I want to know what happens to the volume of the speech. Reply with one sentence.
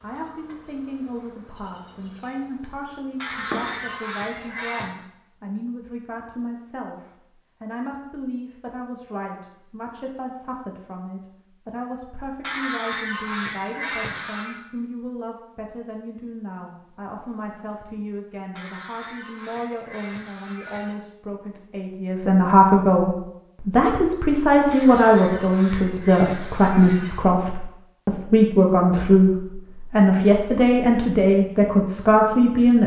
The loudness of the speech goes up.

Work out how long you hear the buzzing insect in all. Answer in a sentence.
The buzzing insect can be heard for 4 seconds in total.